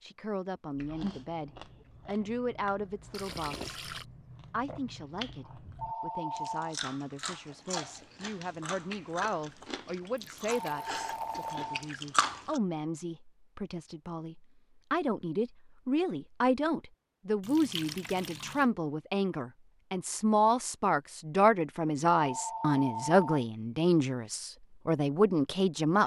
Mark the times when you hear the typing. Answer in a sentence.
The typing can't be heard in this clip.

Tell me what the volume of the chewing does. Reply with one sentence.
The volume of the chewing goes up.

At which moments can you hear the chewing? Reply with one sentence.
The chewing can be heard from 0.8 to 12.6 s.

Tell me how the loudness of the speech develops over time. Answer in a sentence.
The loudness of the speech goes up.